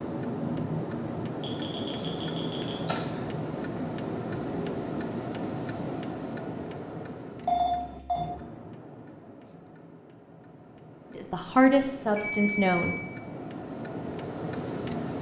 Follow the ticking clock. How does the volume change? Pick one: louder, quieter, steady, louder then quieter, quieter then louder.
quieter then louder.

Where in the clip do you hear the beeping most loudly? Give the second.
8 s.